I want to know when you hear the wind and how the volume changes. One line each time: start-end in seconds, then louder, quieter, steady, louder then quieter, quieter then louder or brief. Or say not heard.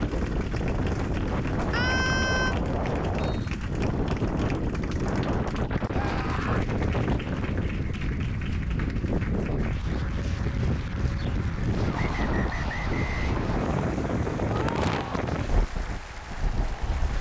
0.0-17.1 steady.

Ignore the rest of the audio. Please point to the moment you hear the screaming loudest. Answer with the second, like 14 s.
2 s.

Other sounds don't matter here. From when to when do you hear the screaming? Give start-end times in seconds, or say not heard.
1.7-2.5, 5.9-6.6, 14.4-15.2.